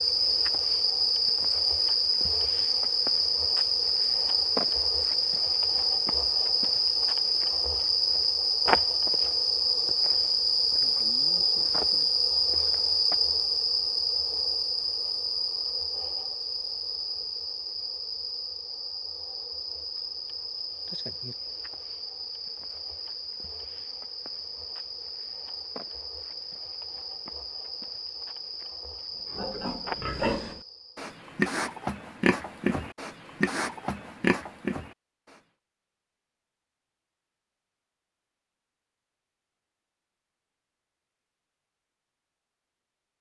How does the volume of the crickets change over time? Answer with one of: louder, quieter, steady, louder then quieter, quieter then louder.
quieter.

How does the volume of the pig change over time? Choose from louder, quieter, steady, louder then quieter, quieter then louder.
steady.